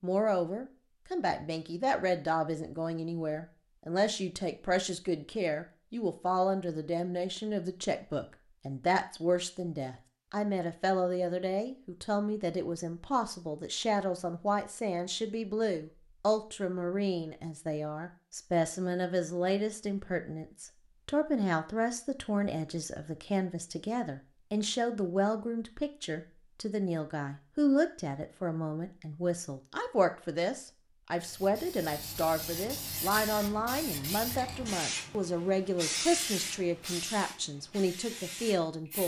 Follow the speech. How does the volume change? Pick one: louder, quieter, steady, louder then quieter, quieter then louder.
steady.